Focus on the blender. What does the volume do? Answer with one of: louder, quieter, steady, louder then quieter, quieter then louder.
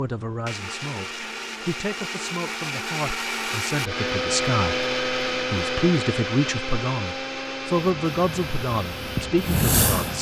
louder then quieter.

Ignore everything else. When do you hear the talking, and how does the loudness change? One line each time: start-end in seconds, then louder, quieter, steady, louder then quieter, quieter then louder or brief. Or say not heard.
0.0-10.1 louder.